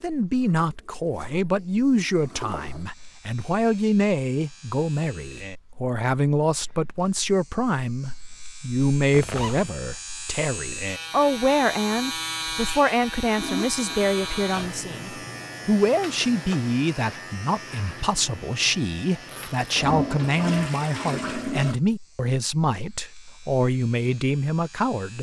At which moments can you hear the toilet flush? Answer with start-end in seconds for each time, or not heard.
1.1-2.9, 13.3-14.6, 19.8-21.8.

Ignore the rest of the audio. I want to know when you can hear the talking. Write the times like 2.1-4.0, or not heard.
0.0-25.1.